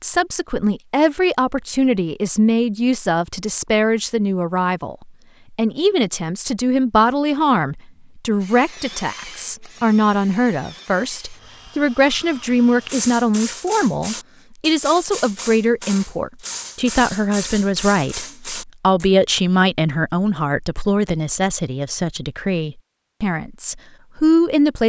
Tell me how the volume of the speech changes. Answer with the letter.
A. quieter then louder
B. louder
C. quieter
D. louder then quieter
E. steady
E.